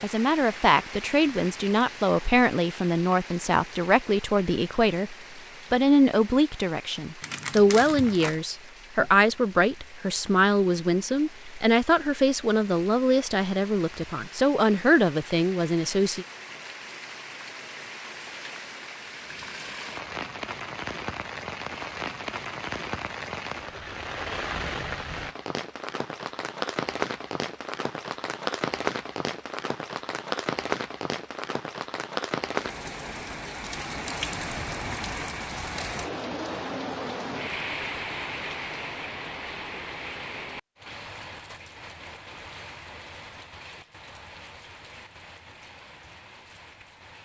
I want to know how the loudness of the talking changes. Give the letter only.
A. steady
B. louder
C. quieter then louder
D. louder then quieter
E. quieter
A.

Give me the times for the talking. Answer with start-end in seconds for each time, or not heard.
0.0-16.2.